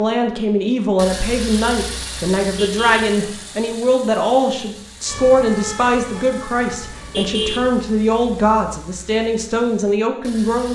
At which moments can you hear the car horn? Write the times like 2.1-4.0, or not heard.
2.4-3.1, 6.7-7.7.